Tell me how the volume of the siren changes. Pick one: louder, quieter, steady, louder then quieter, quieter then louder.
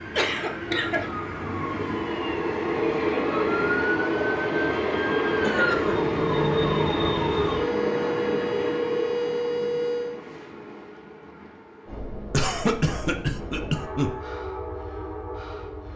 louder.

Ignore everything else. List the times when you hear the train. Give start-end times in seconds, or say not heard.
0.0-15.9.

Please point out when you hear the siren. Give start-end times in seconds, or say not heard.
0.0-10.2.